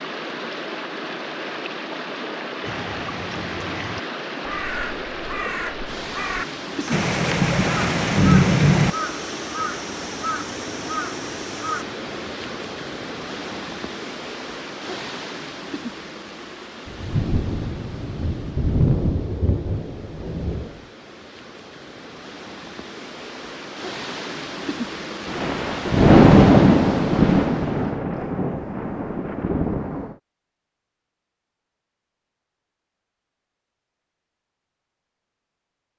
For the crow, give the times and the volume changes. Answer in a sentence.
The crow can be heard from 2.6 to 11.8 s, at a steady volume.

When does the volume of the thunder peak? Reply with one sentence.
The volume of the thunder peaks at 26 seconds.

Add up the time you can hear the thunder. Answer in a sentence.
You can hear the thunder for 11 seconds altogether.